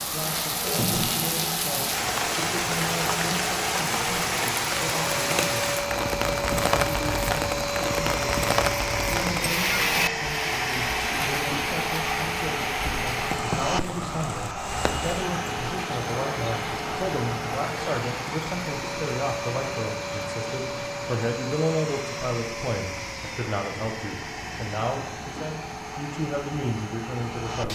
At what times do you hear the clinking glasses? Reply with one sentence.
The clinking glasses can't be heard in this clip.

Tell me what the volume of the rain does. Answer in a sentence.
The loudness of the rain goes down.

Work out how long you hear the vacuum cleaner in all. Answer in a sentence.
You can hear the vacuum cleaner for 28 seconds altogether.